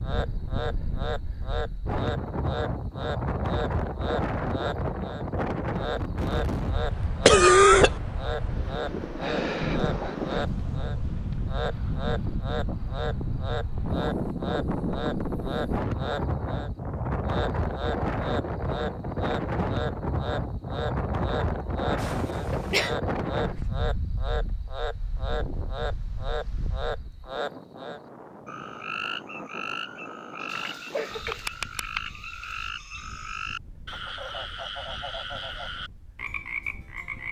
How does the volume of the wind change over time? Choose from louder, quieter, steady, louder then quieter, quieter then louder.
quieter.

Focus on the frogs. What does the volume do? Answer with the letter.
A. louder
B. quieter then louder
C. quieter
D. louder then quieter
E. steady
E.